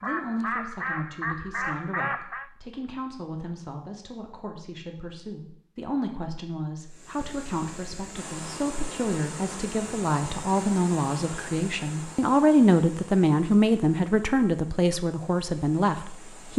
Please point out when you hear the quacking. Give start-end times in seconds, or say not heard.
0.0-2.5.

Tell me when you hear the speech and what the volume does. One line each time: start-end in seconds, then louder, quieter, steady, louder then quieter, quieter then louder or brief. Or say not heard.
0.0-16.5 louder.